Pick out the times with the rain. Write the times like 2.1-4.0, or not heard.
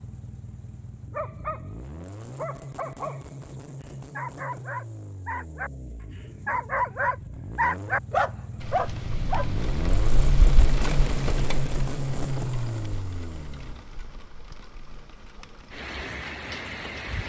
8.6-17.2.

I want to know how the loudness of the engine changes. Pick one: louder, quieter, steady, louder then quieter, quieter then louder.
louder.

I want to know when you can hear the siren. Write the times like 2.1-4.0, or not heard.
not heard.